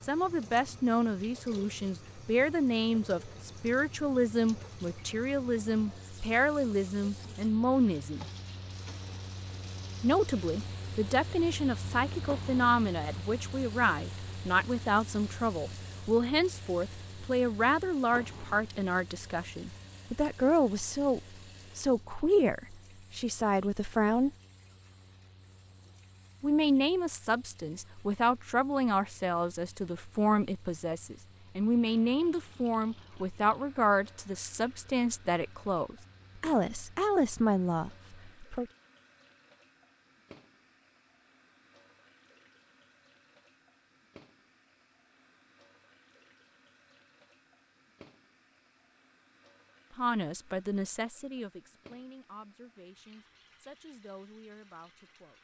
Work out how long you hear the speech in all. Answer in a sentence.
You can hear the speech for 40 seconds altogether.